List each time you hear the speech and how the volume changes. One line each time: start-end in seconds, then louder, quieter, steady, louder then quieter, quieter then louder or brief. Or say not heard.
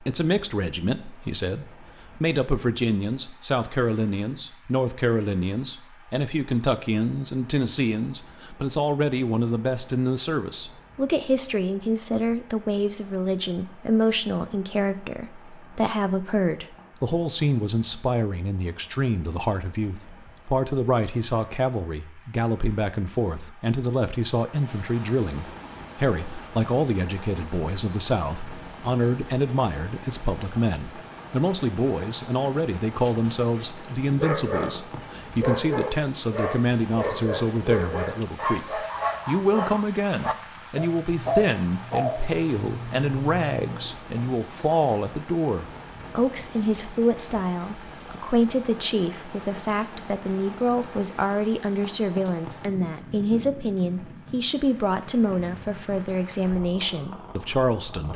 0.0-58.1 steady.